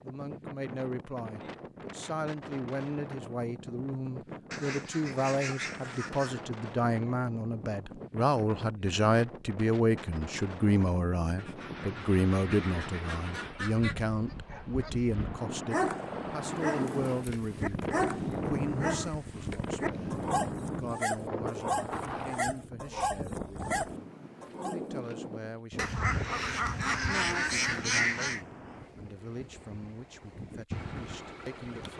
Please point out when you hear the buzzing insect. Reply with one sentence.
The buzzing insect can't be heard in this clip.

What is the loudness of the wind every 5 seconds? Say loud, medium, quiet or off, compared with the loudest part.
medium, medium, medium, loud, loud, medium, medium.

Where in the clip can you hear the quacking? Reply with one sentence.
You can hear the quacking from 4.5 to 6.4 s, from 11.3 to 13.9 s, from 16.7 to 18.4 s and from 25.8 to 28.4 s.